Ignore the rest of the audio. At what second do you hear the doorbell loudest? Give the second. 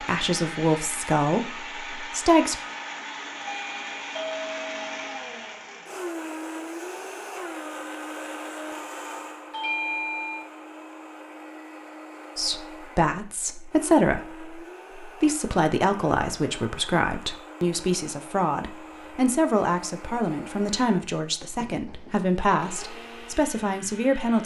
10 s.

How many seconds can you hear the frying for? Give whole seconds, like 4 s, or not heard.
not heard.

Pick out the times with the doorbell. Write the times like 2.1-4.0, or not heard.
3.4-5.7, 9.5-10.5, 21.6-22.3.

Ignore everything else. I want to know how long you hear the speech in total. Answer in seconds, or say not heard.
15 s.